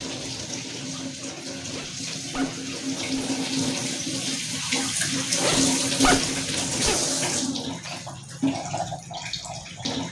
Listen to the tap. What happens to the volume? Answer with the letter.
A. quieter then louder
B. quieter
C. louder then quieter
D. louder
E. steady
C.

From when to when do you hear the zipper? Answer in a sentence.
You can hear the zipper from 1.7 to 3.4 s and from 5.4 to 7.0 s.